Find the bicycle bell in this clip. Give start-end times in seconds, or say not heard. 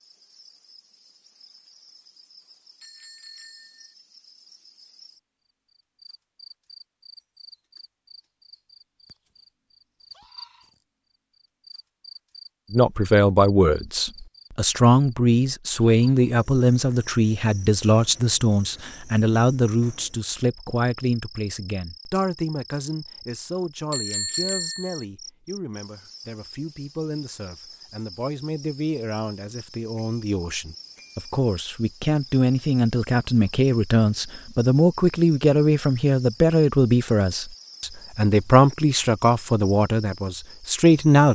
2.8-4.0, 23.9-25.1, 29.9-31.3.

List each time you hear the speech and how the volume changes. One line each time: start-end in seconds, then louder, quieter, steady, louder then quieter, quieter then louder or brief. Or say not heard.
12.7-41.2 quieter then louder.